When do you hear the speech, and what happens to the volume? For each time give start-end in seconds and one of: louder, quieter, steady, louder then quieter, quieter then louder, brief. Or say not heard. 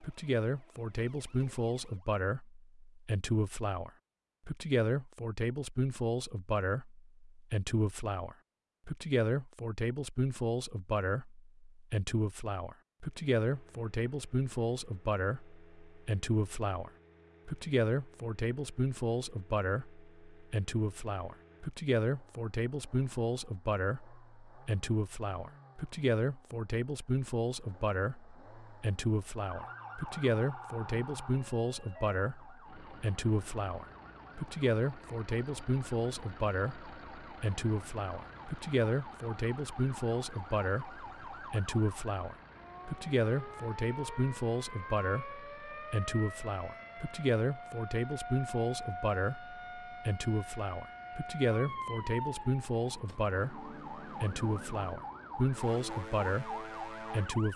0.0-57.5 steady.